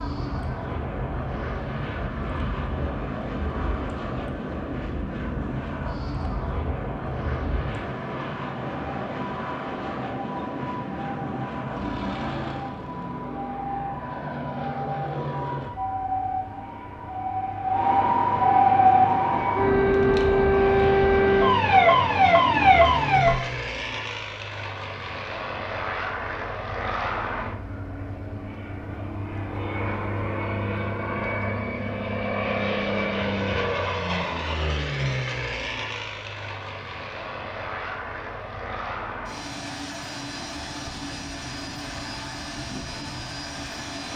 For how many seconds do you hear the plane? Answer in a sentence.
You can hear the plane for 44 seconds altogether.